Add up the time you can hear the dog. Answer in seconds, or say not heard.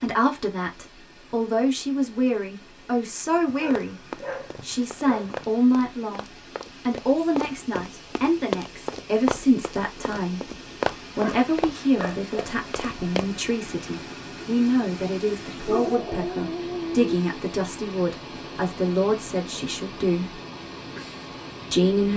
5 s.